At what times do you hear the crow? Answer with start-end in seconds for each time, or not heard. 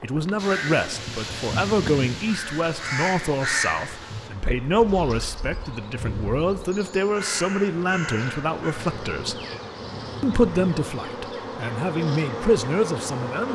0.3-10.7.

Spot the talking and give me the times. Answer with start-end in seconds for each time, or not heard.
0.0-9.4, 10.2-13.4.